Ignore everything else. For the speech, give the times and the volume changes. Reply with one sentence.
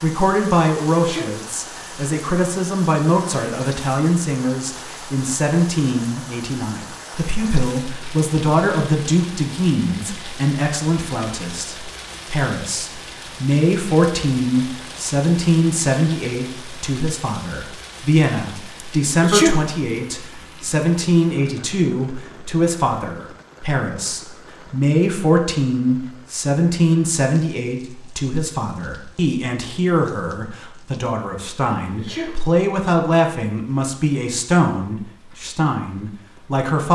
You can hear the speech from 0.0 to 36.9 s, at a steady volume.